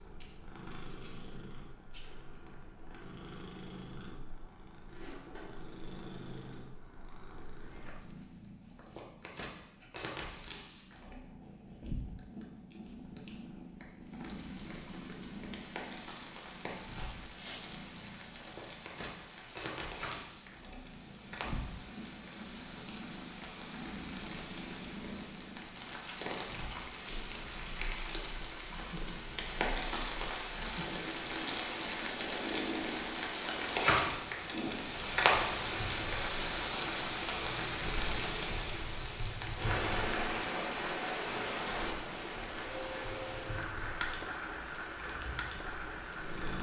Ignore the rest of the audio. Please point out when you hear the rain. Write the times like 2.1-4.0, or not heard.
14.1-46.5.